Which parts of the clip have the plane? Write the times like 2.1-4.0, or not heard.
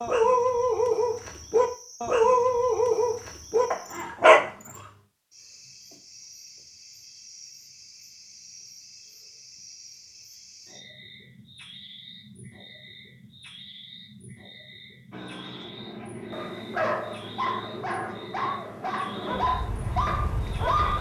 15.1-20.9.